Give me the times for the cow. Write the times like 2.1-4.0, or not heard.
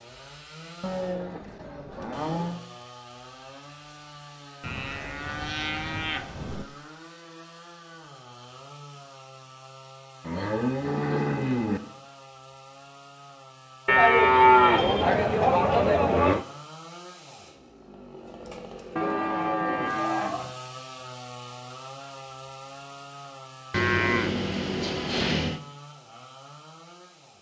0.8-2.6, 4.6-6.7, 10.2-11.8, 13.8-16.4, 18.9-20.5, 23.7-25.6.